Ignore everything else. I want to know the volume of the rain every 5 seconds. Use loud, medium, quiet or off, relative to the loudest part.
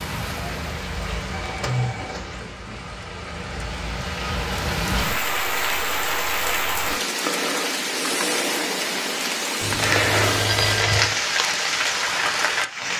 medium, loud, loud.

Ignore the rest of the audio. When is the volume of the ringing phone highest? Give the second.
11 s.